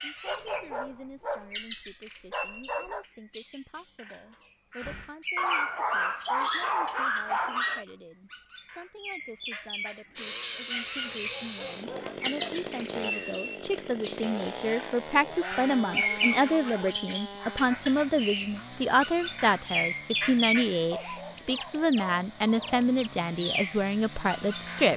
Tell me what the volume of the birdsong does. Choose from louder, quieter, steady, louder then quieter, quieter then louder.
louder.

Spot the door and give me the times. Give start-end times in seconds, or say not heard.
4.3-5.2.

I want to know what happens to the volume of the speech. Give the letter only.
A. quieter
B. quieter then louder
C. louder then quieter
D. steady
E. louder
E.